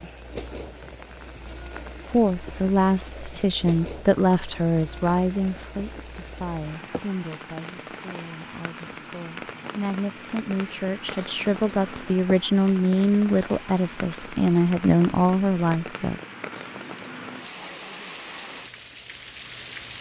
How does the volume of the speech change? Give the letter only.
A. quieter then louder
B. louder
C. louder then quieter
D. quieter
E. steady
A.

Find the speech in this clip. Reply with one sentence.
You can hear the speech from 2.1 to 16.1 s.